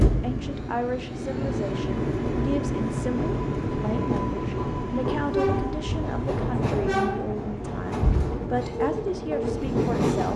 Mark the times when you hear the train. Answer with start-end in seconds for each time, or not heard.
0.0-10.3.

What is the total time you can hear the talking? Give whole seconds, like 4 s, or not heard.
10 s.